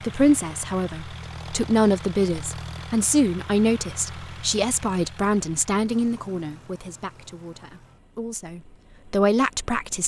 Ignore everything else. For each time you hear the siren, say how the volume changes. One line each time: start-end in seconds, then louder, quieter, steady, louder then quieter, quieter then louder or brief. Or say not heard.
not heard.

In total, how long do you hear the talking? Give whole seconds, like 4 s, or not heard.
10 s.